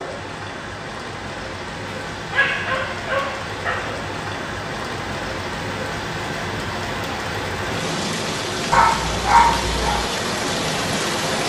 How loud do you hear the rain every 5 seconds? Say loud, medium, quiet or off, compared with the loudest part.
medium, loud, loud.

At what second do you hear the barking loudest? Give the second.
9 s.